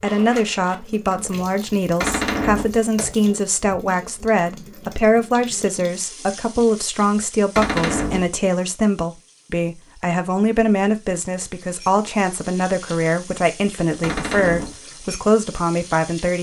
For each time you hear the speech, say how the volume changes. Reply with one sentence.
You can hear the speech from 0.0 to 16.3 s, at a steady volume.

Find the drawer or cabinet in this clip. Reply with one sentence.
You can hear the drawer or cabinet from 2.0 to 2.8 s, from 7.5 to 8.3 s and from 14.0 to 14.8 s.